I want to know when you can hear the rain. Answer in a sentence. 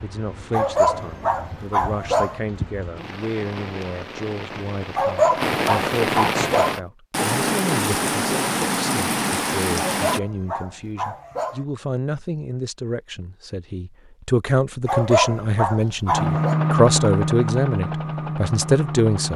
You can hear the rain from 0.0 to 10.2 s.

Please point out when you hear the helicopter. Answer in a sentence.
The helicopter can be heard from 16.1 to 19.3 s.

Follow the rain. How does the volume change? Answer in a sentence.
The loudness of the rain goes up.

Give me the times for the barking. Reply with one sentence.
You can hear the barking from 0.5 to 2.4 s, from 5.0 to 6.8 s, from 9.8 to 11.7 s and from 14.8 to 16.6 s.